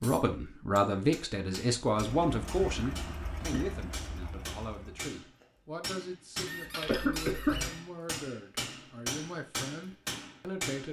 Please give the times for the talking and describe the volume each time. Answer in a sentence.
You can hear the talking from 0.0 to 10.8 s, getting quieter.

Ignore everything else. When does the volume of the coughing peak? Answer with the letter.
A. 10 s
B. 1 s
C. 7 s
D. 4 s
C.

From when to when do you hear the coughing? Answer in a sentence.
You can hear the coughing from 2.5 to 3.7 s and from 6.8 to 7.7 s.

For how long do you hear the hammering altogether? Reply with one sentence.
You can hear the hammering for 11 seconds altogether.